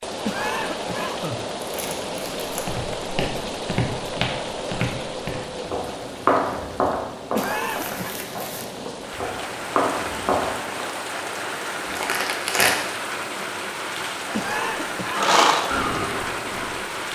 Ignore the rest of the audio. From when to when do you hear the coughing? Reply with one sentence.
You can hear the coughing from 0.2 to 1.4 s, from 7.3 to 8.2 s and from 14.3 to 15.2 s.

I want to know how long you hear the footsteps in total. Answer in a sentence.
You can hear the footsteps for 8 seconds altogether.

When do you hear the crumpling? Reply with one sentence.
The crumpling can be heard from 1.6 to 2.8 s, from 7.3 to 8.7 s and from 11.8 to 12.8 s.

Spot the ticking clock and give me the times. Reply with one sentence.
You can't hear the ticking clock here.